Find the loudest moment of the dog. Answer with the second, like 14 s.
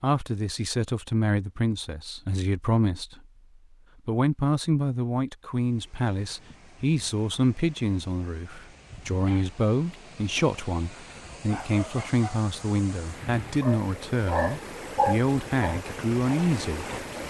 15 s.